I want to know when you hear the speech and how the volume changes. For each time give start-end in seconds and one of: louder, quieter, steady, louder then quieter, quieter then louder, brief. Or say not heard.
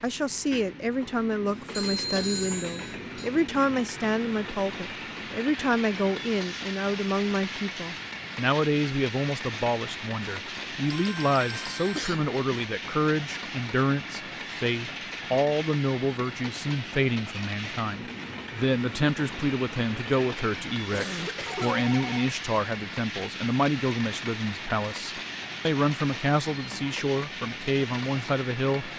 0.0-28.9 steady.